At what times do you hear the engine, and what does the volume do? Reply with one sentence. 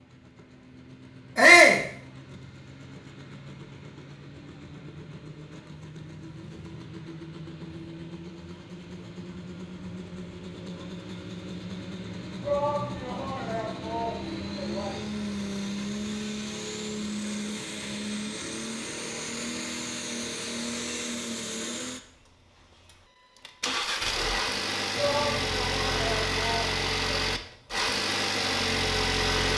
The engine can be heard from 0.0 to 29.5 s, getting louder.